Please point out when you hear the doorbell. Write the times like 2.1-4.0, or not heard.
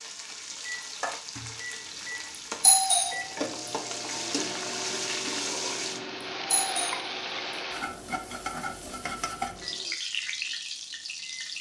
2.6-3.2, 6.5-7.1.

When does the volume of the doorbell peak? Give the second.
3 s.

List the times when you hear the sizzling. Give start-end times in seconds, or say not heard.
0.0-11.5.